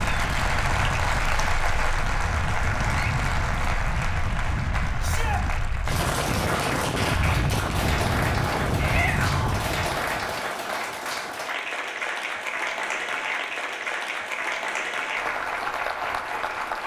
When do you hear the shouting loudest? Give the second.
9 s.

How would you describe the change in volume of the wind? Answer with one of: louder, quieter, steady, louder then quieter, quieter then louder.
louder.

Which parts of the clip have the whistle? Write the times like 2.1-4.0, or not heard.
not heard.